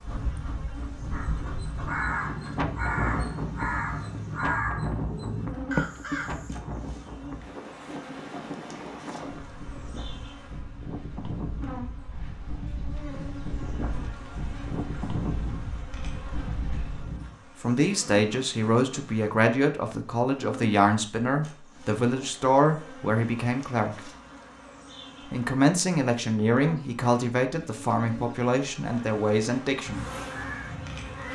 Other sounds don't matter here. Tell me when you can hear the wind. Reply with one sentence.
You can hear the wind from 0.0 to 17.4 s.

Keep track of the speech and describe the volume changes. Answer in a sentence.
The loudness of the speech stays about the same.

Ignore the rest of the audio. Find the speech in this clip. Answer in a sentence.
You can hear the speech from 17.6 to 24.0 s and from 25.3 to 30.1 s.